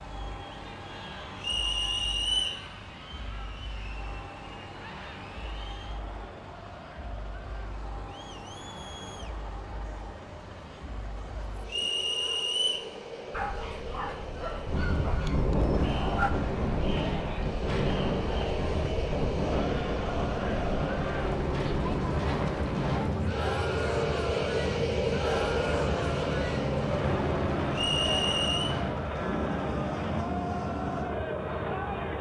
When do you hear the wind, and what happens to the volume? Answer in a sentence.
You can hear the wind from 14.7 to 32.1 s, getting quieter.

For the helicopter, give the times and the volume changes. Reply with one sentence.
You can hear the helicopter from 0.0 to 32.1 s, getting louder.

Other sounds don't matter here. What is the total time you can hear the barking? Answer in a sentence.
You can hear the barking for 3 seconds altogether.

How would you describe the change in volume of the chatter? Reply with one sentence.
The loudness of the chatter goes up.